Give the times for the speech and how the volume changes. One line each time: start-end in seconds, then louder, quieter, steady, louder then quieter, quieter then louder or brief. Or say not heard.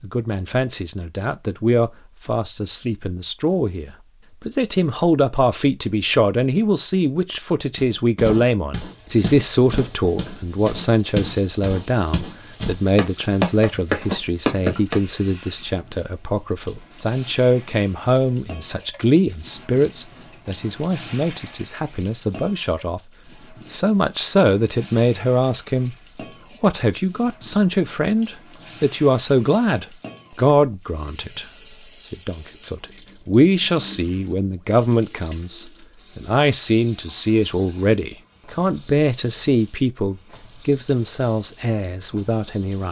0.0-25.9 steady
26.6-42.8 steady.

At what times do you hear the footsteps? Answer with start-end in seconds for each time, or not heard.
7.8-14.9.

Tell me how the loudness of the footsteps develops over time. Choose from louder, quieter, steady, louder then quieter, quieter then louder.
louder.